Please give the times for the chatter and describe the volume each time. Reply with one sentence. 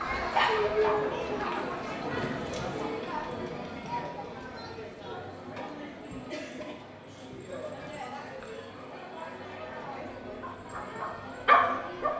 The chatter can be heard from 0.0 to 12.1 s, getting quieter.